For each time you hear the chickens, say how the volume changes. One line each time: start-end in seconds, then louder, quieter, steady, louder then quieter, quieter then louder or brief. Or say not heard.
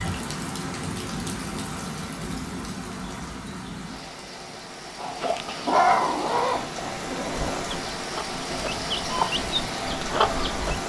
5.0-10.8 quieter then louder.